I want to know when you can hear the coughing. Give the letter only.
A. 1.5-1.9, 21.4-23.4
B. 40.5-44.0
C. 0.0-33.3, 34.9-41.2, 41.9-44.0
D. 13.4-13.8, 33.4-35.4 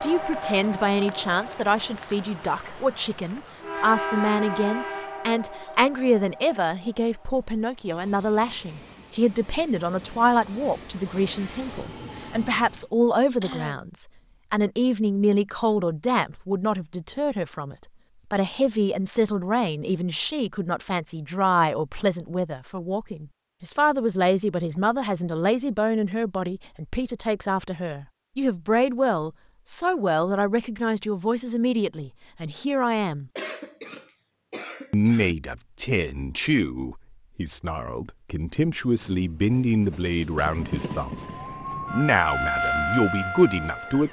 D.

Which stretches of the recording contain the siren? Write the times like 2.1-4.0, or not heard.
40.5-44.0.